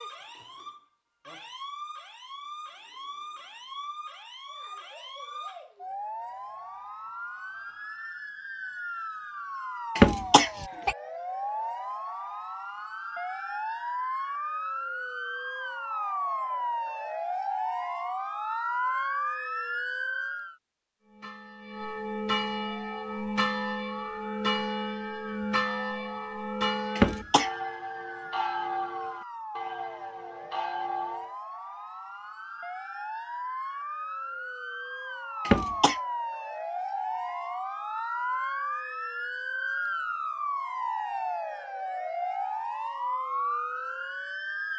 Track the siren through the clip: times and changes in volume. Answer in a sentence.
You can hear the siren from 0.0 to 20.6 s, getting louder; and from 22.4 to 44.7 s, getting louder.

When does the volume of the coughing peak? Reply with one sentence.
The volume of the coughing peaks at 10 seconds.